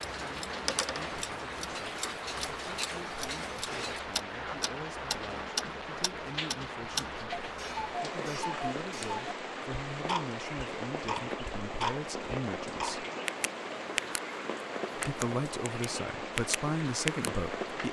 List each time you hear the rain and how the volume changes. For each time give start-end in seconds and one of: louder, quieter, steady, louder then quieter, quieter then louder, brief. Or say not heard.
0.0-17.8 steady.